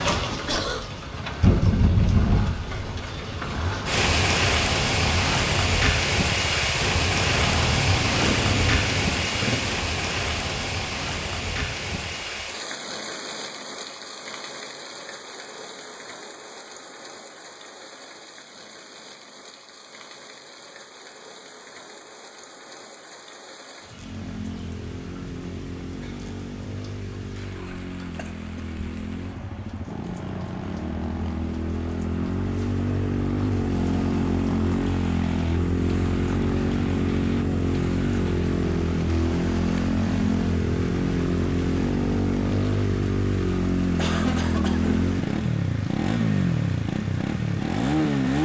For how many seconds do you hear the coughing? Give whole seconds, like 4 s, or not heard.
2 s.